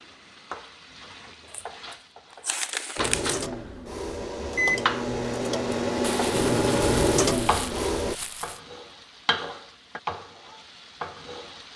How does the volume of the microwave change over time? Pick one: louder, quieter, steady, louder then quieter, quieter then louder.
louder.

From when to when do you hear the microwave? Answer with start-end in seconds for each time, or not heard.
3.0-8.2.